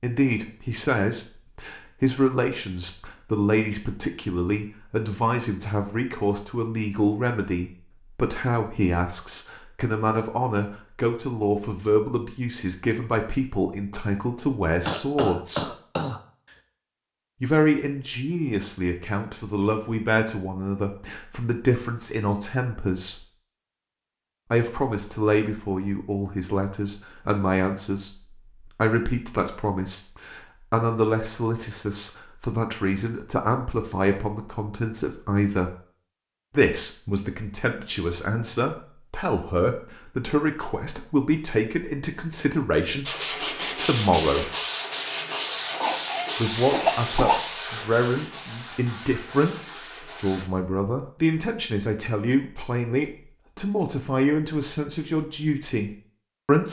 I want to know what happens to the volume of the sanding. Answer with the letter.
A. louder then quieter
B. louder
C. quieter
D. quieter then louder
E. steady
C.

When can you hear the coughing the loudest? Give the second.
47 s.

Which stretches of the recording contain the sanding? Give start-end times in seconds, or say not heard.
43.0-50.5.